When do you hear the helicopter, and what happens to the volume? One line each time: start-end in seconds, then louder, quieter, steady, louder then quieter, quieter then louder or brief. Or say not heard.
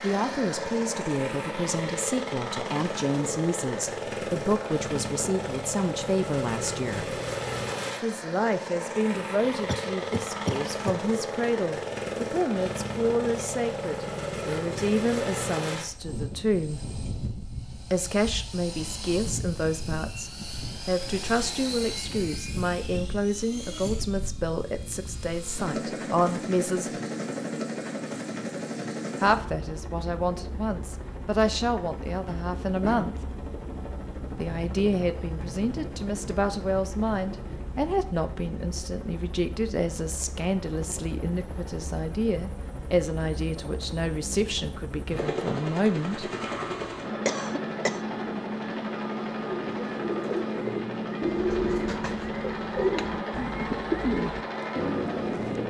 0.0-55.6 quieter then louder.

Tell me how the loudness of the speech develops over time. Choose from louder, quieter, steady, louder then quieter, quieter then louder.
steady.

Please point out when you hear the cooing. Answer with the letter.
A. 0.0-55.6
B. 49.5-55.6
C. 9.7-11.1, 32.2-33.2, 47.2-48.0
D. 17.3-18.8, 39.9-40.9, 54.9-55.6
B.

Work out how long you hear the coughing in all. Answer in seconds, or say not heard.
3 s.